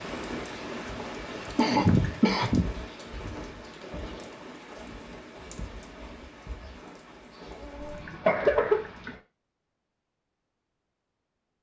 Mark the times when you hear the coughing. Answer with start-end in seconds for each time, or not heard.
1.6-2.8, 7.8-9.2.